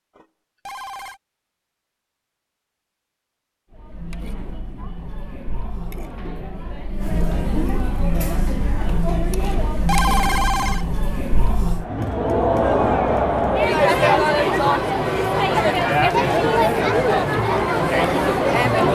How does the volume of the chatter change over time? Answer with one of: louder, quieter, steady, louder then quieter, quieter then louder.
louder.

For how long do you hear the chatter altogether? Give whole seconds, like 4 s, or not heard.
15 s.